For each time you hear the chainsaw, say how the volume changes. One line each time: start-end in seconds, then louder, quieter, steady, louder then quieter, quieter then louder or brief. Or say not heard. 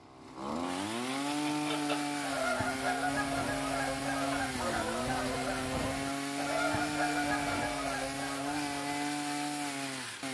0.0-10.2 steady.